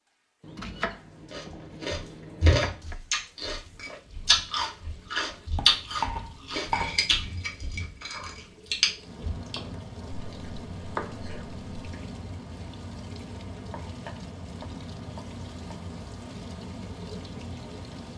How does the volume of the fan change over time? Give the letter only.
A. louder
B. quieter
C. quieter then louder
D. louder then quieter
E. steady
E.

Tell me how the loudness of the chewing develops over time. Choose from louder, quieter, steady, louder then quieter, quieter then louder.
quieter.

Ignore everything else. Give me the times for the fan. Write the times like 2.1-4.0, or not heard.
8.9-18.1.